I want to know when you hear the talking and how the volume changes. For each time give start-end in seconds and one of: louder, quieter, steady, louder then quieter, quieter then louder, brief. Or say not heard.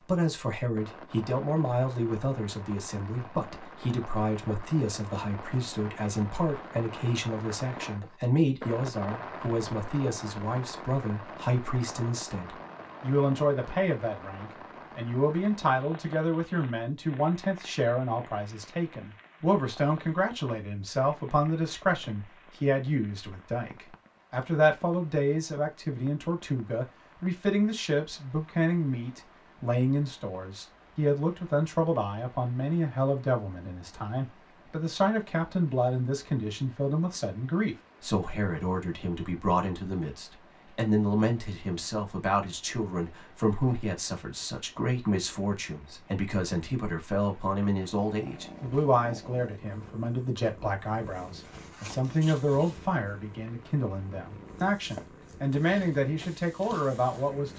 0.1-57.5 steady.